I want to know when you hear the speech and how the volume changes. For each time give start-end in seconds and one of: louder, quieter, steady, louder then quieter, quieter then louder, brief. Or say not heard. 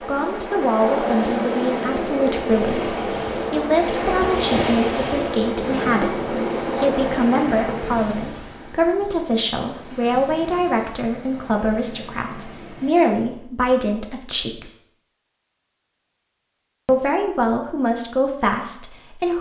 0.0-14.7 steady
16.9-19.3 brief.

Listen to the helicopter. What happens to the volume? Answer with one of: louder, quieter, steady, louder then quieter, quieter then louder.
steady.